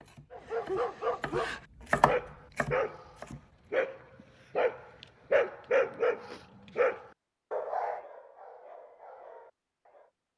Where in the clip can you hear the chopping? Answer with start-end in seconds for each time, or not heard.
0.0-3.7.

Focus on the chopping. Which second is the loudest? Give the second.
2 s.